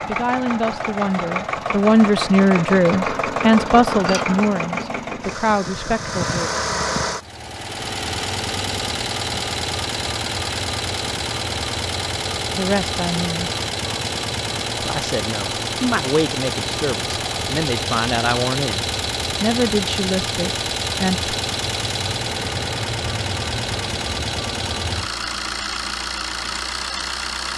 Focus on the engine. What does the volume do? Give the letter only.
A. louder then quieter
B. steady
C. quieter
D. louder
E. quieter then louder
B.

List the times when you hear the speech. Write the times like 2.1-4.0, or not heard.
0.1-6.5, 12.6-13.5, 14.8-21.4.